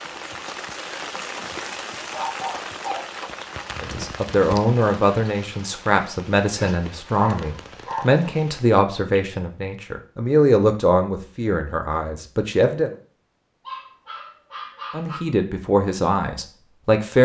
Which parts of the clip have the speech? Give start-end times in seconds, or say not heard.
3.8-12.9, 14.9-17.2.